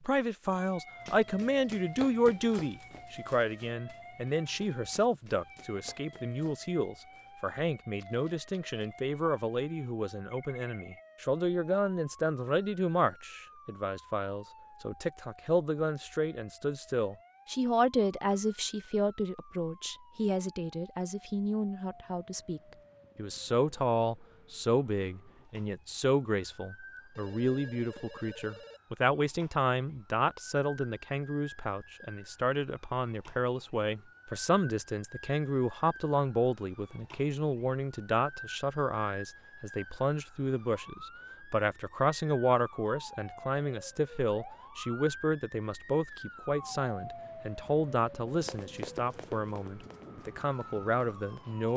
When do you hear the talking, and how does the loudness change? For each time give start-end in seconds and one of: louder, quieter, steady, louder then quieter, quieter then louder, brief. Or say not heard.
0.0-51.7 steady.